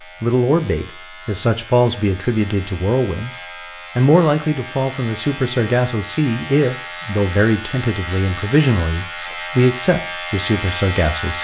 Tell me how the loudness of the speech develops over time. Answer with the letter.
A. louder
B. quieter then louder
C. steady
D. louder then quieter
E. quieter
C.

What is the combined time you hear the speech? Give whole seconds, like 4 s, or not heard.
11 s.